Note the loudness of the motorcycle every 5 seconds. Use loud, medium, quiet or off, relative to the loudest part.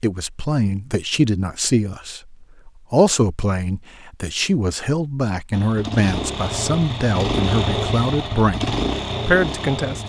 off, loud.